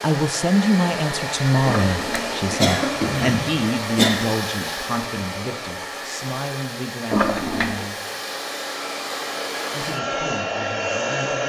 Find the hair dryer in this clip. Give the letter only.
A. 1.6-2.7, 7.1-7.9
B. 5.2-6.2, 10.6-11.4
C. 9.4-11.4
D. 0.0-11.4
D.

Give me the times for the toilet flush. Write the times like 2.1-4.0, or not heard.
1.6-2.7, 7.1-7.9.